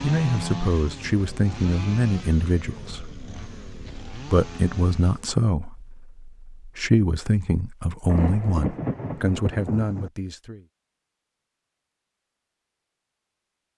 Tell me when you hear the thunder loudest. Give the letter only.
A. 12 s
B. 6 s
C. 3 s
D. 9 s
D.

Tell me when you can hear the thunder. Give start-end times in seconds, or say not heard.
8.1-10.1.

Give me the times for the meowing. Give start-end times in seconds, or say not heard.
not heard.